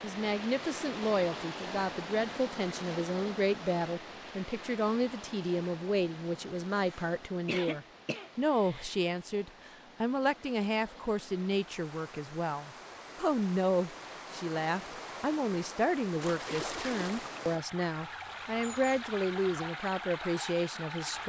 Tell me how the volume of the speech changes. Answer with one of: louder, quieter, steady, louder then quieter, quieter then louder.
steady.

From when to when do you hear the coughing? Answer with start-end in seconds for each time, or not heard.
6.8-8.9.